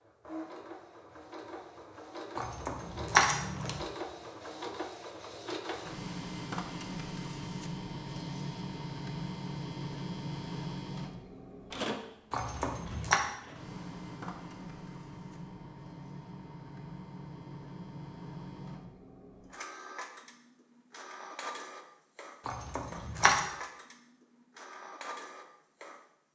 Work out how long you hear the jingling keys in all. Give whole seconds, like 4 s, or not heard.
3 s.